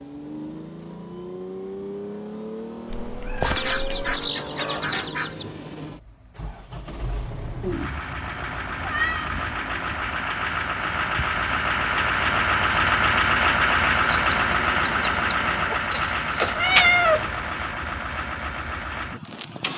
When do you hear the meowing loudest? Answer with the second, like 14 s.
17 s.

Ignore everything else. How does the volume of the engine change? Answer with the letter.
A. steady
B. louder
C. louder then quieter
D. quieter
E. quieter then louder
C.